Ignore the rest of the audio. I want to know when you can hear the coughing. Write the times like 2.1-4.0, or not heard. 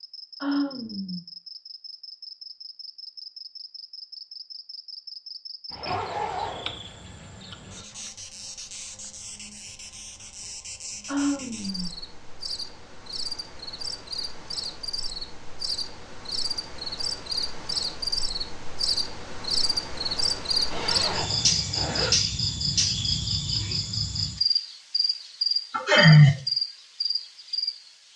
not heard.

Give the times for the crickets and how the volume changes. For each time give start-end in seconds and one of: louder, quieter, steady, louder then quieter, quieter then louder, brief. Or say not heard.
0.0-28.1 louder.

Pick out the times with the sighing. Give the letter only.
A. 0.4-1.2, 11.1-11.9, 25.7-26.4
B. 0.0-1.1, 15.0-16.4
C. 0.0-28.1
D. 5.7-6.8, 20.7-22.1
A.